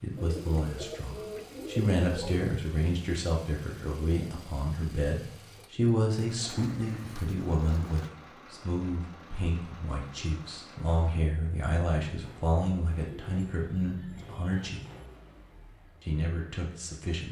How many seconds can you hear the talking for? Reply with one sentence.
You can hear the talking for 16 seconds altogether.